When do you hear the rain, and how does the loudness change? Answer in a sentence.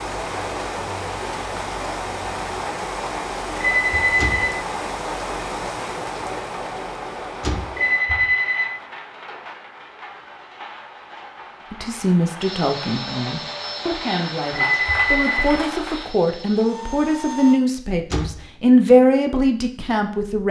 You can hear the rain from 0.0 to 16.1 s, getting quieter then louder.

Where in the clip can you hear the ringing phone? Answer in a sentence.
You can hear the ringing phone from 3.6 to 4.5 s, from 7.8 to 8.8 s and from 14.7 to 15.5 s.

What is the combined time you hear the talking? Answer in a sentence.
You can hear the talking for 9 seconds altogether.